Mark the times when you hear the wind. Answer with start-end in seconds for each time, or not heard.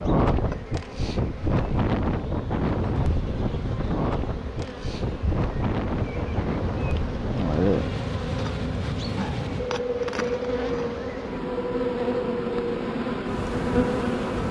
0.0-14.4.